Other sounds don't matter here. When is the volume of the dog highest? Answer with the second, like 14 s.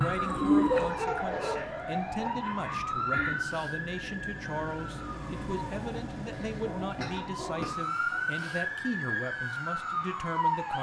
1 s.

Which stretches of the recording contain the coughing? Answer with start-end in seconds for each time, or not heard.
2.2-3.4, 6.3-7.8.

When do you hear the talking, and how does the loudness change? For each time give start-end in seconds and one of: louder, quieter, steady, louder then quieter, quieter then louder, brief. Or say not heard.
0.0-10.7 steady.